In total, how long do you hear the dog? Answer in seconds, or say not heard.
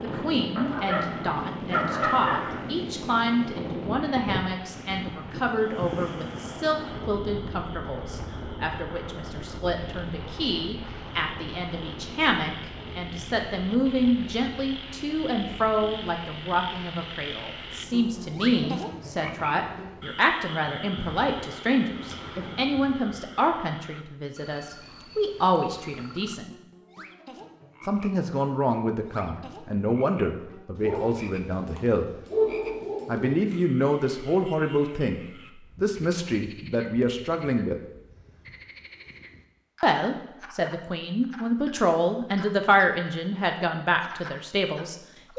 5 s.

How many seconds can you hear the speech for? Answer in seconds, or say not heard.
41 s.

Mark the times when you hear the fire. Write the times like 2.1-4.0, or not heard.
not heard.